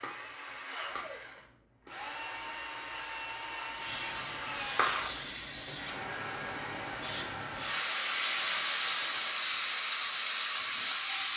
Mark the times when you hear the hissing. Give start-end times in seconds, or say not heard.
3.7-11.3.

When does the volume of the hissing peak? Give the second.
11 s.